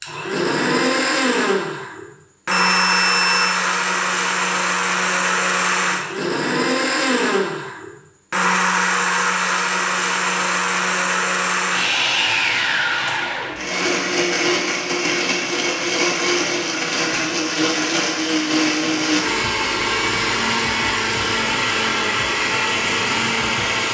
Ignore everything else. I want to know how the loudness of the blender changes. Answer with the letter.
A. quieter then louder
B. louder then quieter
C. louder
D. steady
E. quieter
D.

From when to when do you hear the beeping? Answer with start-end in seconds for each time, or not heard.
2.5-3.6.